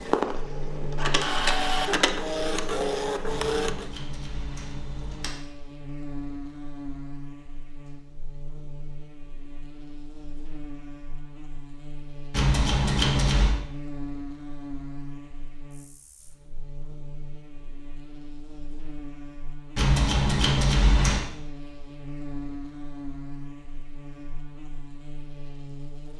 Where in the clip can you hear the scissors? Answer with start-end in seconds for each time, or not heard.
3.2-5.3, 12.3-13.6, 19.8-21.2.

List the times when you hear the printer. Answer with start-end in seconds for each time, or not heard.
0.0-3.9.